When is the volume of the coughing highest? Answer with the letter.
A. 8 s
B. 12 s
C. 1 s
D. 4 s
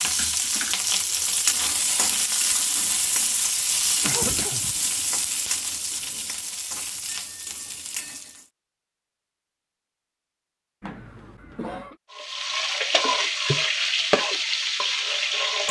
D.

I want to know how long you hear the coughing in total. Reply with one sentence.
The coughing can be heard for 2 seconds in total.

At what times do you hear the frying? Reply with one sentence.
The frying can be heard from 0.0 to 8.4 s and from 12.1 to 15.6 s.